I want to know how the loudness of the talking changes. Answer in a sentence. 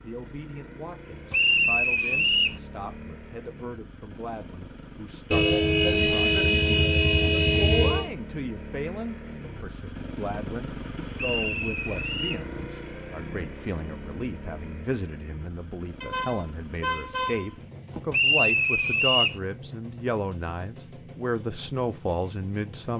The loudness of the talking goes up.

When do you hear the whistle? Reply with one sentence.
The whistle can be heard from 1.3 to 2.6 s, from 11.2 to 12.4 s and from 18.1 to 19.4 s.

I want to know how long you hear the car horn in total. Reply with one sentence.
You can hear the car horn for 5 seconds altogether.